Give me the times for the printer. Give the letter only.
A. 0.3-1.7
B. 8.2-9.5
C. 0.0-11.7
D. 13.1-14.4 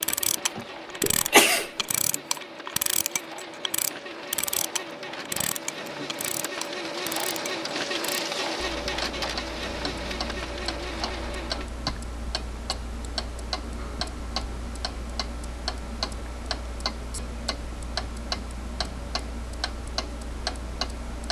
C.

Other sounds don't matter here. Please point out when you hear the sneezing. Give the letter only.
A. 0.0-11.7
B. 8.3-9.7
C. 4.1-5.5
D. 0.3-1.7
D.